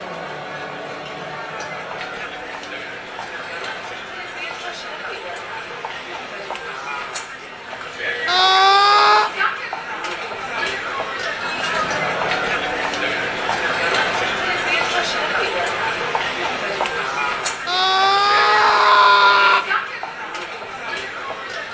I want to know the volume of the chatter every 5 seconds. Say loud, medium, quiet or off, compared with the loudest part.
medium, medium, loud, loud, medium.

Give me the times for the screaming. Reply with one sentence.
The screaming can be heard from 8.2 to 9.3 s and from 17.6 to 19.6 s.